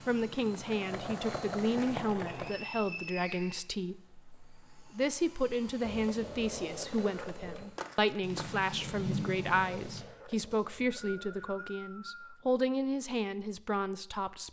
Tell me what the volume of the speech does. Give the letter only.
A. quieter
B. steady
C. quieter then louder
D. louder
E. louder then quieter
B.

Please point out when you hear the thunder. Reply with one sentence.
The thunder can be heard from 8.2 to 10.0 s.